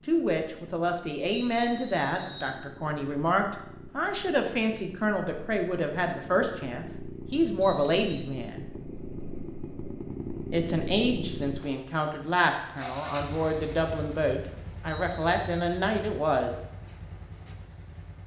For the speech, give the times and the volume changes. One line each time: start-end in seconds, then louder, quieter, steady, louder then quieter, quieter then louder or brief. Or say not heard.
0.1-8.6 steady
10.5-16.6 steady.